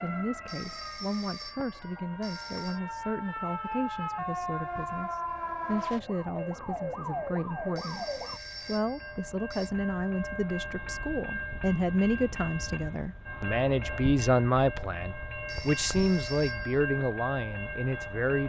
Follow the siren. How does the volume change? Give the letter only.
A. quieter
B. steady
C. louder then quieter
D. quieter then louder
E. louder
E.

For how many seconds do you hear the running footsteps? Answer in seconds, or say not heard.
not heard.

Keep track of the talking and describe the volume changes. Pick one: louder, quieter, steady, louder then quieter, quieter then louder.
louder.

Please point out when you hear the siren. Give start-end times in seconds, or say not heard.
0.0-8.4.